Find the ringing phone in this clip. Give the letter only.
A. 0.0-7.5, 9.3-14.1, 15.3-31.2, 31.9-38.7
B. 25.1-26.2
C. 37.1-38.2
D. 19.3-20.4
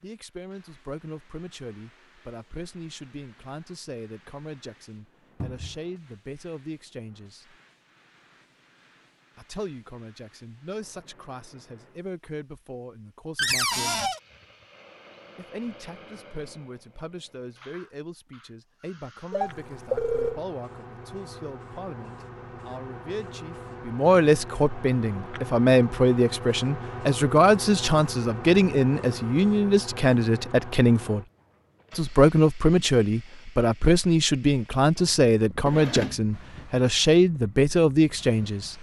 D.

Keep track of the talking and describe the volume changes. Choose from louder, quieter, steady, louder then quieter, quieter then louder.
louder.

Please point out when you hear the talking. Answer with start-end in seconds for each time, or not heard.
0.0-7.5, 9.3-14.1, 15.3-31.2, 31.9-38.7.